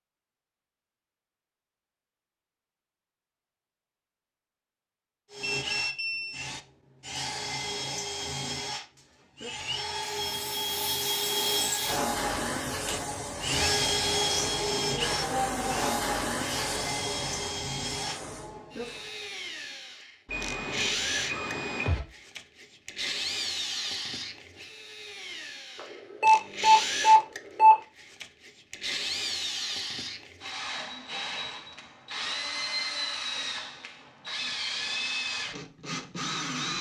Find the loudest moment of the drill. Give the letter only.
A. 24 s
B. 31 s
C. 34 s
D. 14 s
D.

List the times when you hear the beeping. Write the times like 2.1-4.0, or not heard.
5.4-6.5, 20.2-22.0, 25.8-27.8.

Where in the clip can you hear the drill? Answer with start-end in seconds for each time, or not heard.
5.3-36.7.